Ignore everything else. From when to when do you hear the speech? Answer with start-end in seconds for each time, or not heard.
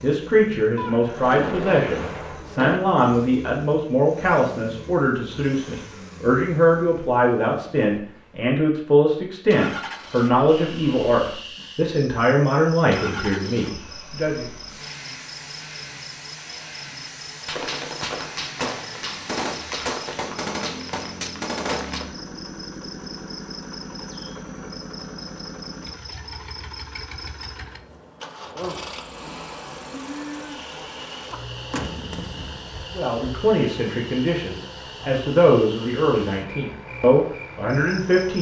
0.0-14.4, 32.9-38.3.